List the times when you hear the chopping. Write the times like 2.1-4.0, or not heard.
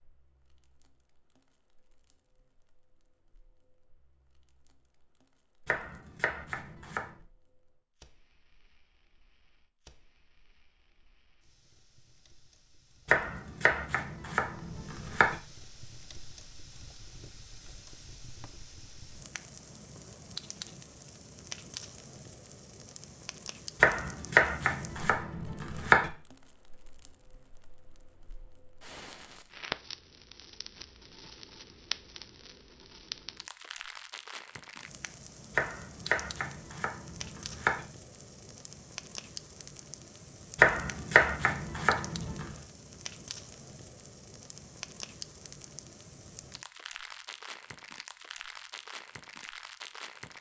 5.7-7.2, 13.1-15.4, 23.8-26.1, 35.5-37.9, 40.5-42.5.